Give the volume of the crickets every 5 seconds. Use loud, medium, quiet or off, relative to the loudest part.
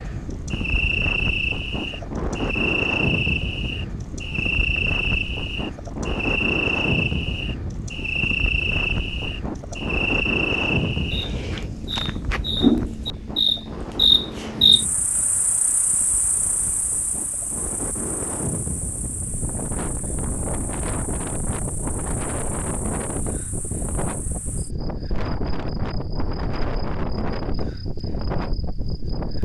medium, medium, loud, quiet, quiet, quiet.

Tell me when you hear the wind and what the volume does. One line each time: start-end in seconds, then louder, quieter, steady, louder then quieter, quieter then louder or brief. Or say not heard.
0.0-29.3 quieter then louder.